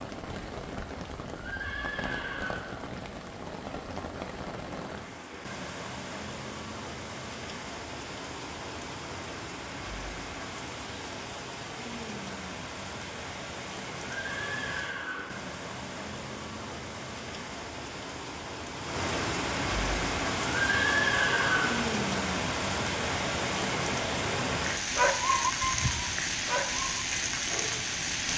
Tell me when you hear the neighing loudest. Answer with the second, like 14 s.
21 s.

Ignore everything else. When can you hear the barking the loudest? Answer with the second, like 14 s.
25 s.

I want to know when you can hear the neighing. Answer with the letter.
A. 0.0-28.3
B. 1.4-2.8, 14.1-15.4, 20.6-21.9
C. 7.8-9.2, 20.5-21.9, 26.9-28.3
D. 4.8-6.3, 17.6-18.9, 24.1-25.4
B.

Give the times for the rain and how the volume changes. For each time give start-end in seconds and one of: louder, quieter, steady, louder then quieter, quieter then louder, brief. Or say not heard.
0.0-28.3 louder.